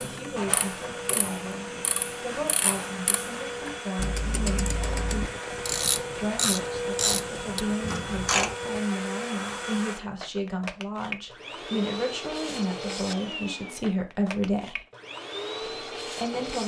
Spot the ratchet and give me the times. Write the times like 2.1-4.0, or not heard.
0.0-8.6.